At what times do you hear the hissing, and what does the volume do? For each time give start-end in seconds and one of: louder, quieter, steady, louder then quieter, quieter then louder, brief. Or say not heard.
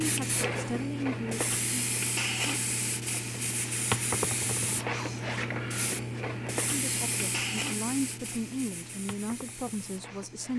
0.0-10.5 quieter.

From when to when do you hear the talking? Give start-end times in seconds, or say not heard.
0.0-1.9, 6.7-10.5.